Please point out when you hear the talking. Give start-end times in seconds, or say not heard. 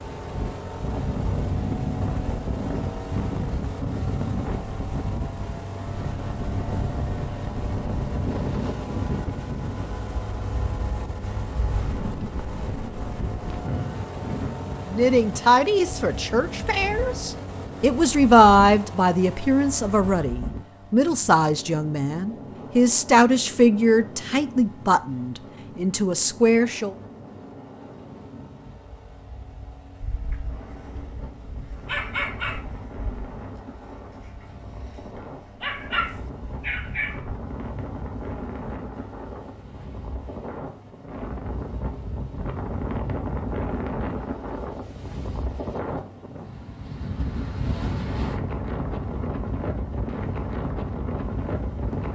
14.9-26.9.